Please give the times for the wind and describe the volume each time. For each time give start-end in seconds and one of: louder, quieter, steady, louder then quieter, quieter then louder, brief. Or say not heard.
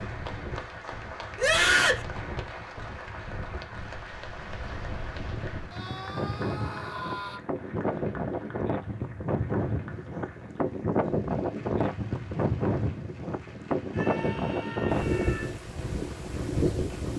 0.0-17.1 louder.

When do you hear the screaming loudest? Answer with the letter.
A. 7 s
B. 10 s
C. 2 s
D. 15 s
C.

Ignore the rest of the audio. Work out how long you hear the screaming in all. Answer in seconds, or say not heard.
4 s.